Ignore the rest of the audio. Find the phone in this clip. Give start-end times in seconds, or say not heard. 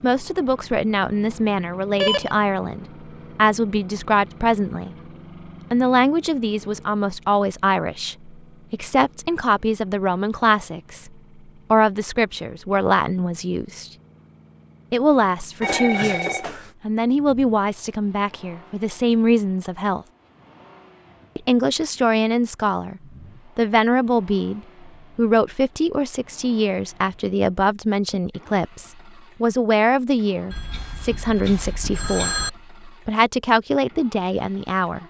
1.9-2.4, 15.6-16.7, 30.5-32.5.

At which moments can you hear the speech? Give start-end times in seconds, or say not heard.
0.0-5.0, 5.7-11.1, 11.7-13.9, 14.9-20.1, 21.4-35.0.